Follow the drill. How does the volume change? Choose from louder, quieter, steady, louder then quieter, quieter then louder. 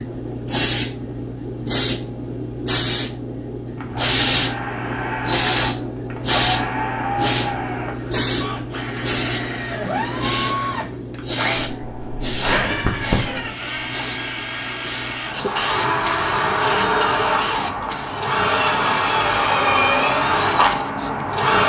louder.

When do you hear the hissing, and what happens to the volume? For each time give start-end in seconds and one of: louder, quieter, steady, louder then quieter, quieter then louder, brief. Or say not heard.
0.0-21.4 quieter.